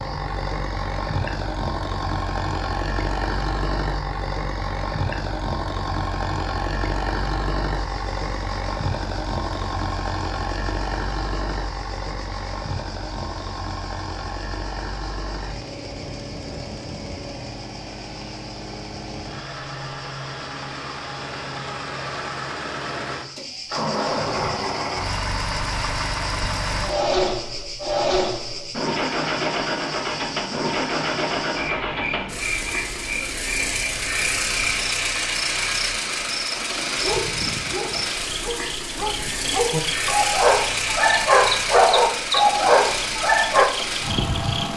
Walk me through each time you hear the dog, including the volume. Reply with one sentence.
You can hear the dog from 37.0 to 43.7 s, getting louder.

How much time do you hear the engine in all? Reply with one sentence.
You can hear the engine for 45 seconds altogether.